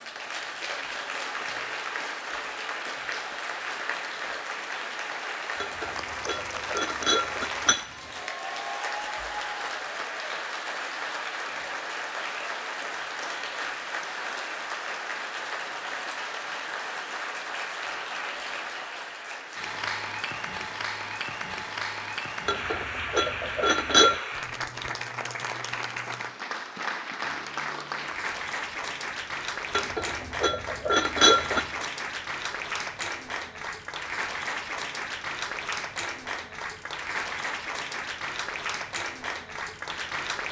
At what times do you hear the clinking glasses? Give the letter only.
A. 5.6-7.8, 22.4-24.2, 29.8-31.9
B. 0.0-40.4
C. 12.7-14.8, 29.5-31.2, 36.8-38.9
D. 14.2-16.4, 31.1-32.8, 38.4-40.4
A.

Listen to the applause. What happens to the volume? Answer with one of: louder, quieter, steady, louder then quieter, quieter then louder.
steady.